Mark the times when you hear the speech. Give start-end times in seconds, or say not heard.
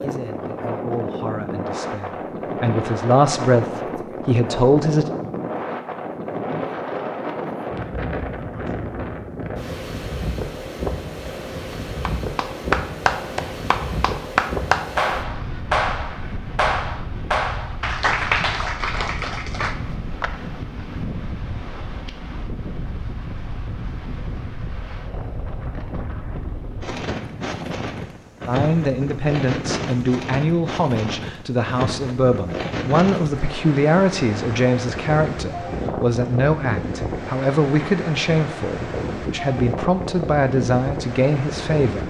0.0-5.0, 28.4-42.0.